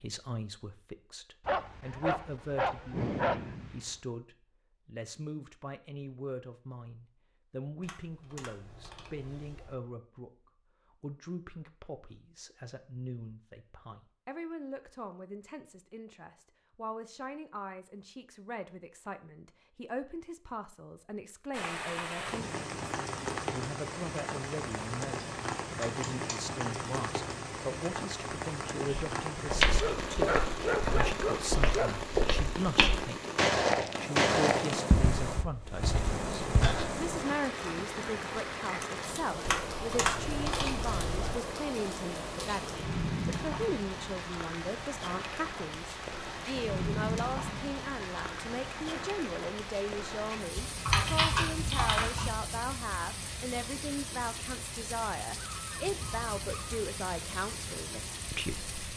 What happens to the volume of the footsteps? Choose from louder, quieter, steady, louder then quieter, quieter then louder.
louder then quieter.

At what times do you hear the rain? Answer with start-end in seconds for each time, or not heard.
21.5-58.9.